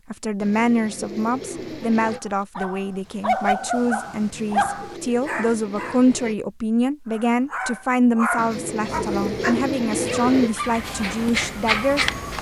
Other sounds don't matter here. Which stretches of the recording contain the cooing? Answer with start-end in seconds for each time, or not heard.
0.4-2.2, 4.2-6.3, 8.3-10.6.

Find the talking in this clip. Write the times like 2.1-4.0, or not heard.
0.1-12.3.